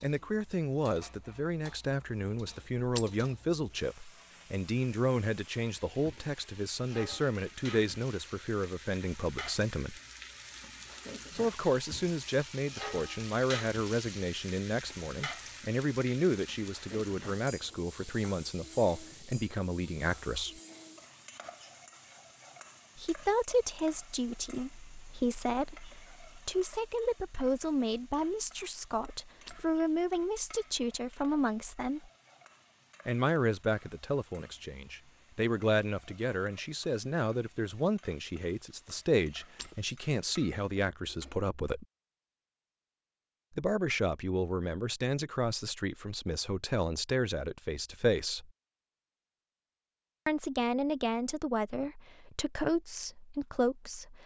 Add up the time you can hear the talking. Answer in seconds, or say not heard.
46 s.